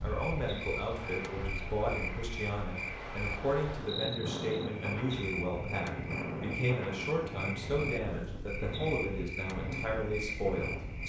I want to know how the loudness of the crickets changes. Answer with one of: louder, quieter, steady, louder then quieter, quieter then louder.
steady.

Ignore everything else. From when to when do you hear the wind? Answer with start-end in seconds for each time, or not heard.
0.0-11.0.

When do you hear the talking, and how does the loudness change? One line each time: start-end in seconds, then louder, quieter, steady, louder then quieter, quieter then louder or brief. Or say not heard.
0.0-11.0 steady.